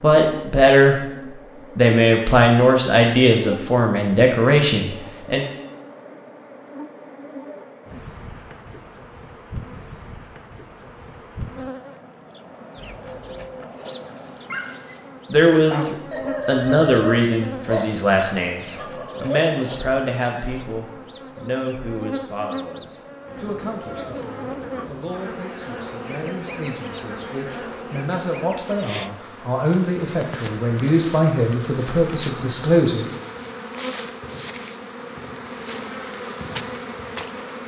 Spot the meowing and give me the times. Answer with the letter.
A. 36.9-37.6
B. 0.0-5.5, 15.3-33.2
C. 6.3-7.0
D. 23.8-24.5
D.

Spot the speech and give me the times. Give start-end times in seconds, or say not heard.
0.0-5.5, 15.3-33.2.